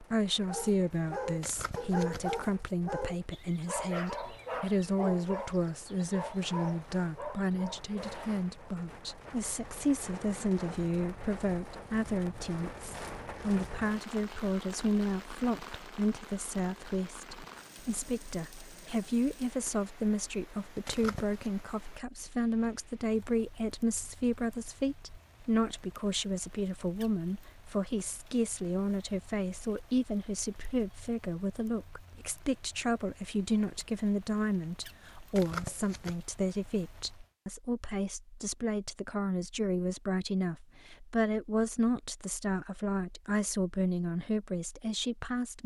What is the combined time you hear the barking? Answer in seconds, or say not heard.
8 s.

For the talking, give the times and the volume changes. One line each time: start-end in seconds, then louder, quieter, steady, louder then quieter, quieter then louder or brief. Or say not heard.
0.0-45.6 steady.